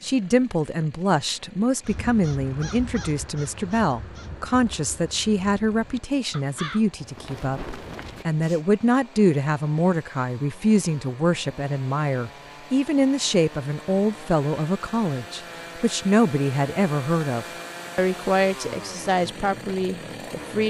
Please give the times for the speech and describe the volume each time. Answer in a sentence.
The speech can be heard from 0.0 to 20.6 s, at a steady volume.